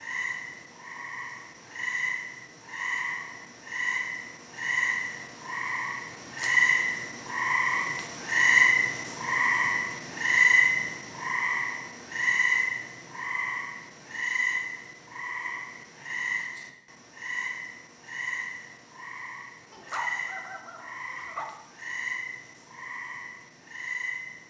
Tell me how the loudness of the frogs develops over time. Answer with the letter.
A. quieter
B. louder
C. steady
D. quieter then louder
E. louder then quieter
E.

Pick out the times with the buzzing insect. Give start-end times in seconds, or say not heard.
not heard.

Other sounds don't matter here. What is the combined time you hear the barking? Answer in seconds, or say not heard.
2 s.